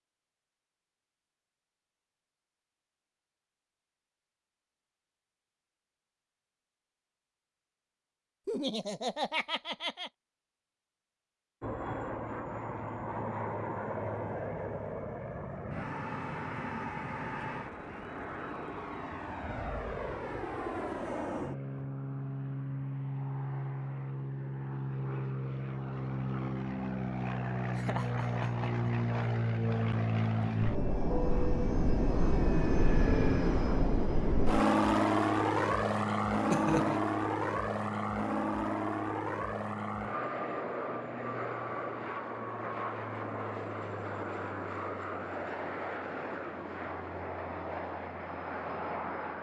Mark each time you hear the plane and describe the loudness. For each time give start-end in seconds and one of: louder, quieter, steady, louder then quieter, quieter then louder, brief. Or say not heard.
11.6-49.3 louder then quieter.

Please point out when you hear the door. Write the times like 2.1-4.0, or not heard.
not heard.